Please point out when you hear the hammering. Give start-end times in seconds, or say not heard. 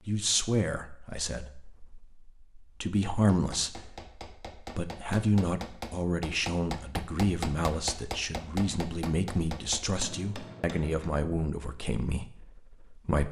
3.3-11.1.